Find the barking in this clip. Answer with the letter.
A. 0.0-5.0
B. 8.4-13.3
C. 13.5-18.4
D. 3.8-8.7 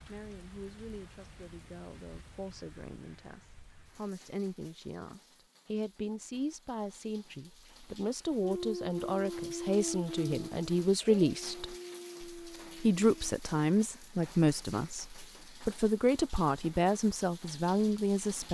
B.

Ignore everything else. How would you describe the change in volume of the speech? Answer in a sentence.
The volume of the speech goes up.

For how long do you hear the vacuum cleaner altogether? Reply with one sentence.
The vacuum cleaner can't be heard in this clip.